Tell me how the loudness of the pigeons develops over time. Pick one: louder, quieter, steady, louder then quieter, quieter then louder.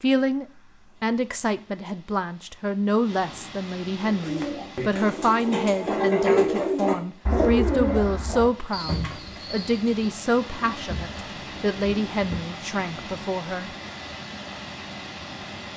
louder then quieter.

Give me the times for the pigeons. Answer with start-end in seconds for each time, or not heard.
4.0-12.4.